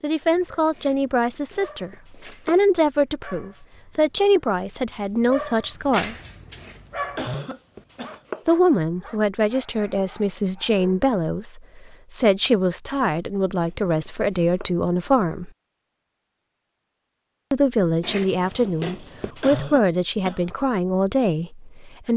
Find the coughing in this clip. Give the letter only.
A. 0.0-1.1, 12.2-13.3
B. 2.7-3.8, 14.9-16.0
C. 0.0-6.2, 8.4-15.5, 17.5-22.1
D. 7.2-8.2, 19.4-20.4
D.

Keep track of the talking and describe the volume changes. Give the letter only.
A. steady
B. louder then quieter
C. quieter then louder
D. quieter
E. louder
A.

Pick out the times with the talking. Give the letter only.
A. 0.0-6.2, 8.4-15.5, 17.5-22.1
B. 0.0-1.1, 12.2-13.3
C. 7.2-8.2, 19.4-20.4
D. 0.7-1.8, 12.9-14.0
A.